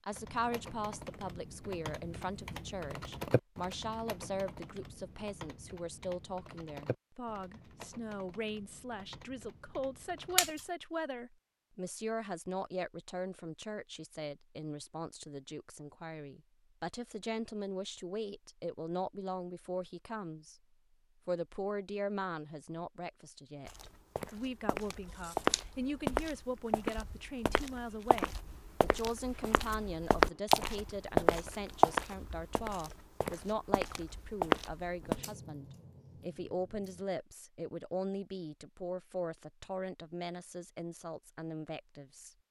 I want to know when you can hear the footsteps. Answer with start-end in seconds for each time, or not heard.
23.6-35.2.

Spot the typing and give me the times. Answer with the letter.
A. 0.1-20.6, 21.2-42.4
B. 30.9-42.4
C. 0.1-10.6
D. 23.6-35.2
C.